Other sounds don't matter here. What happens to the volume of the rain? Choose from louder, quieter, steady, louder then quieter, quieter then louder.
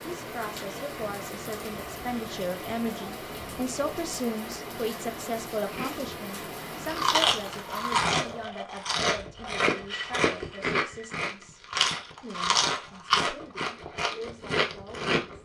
steady.